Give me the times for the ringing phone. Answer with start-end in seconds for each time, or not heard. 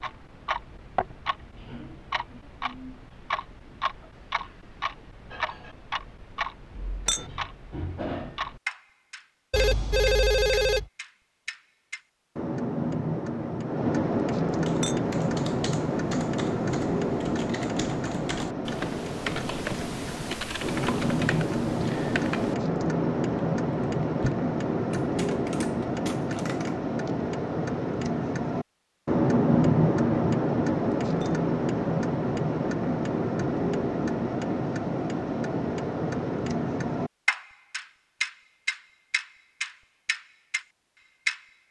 9.5-10.8.